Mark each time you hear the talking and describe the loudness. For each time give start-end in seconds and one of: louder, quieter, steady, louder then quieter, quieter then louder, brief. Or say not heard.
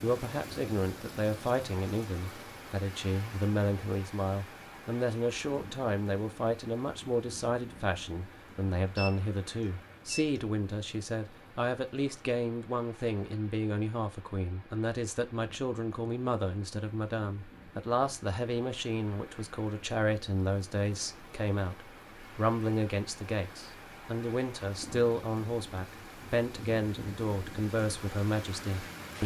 0.0-29.2 steady.